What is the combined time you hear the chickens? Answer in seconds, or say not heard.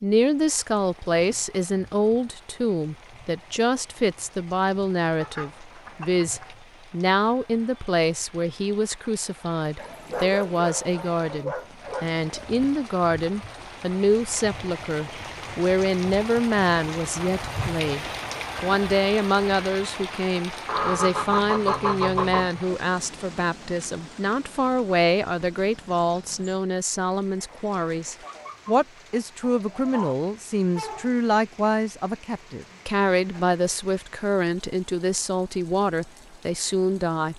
6 s.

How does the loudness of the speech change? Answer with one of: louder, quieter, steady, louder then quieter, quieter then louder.
steady.